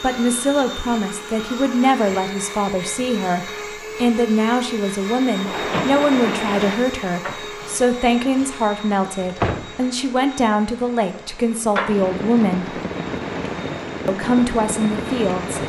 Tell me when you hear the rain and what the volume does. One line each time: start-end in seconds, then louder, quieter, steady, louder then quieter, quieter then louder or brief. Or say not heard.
5.3-15.6 quieter then louder.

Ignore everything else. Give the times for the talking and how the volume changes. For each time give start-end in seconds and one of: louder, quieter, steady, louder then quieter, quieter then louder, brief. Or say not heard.
0.0-12.8 steady
14.1-15.6 brief.